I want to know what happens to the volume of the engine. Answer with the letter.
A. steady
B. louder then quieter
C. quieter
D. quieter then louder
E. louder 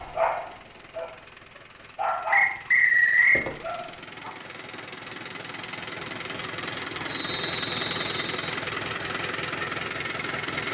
E.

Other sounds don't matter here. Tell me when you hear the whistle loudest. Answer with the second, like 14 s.
3 s.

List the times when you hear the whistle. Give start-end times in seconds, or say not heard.
2.3-3.5, 7.0-8.3.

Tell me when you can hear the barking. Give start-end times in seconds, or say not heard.
0.0-4.3.